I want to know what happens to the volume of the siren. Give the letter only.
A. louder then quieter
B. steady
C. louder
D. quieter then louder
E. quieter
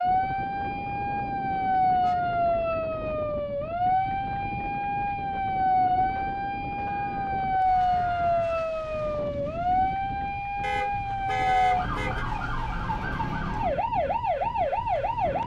B.